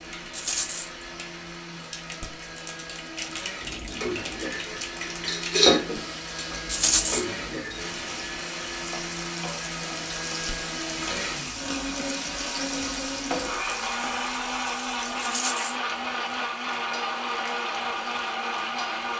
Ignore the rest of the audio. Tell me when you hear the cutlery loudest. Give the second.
6 s.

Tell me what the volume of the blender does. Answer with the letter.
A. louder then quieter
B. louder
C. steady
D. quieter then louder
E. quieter
B.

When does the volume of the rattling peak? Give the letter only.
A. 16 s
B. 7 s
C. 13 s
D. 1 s
B.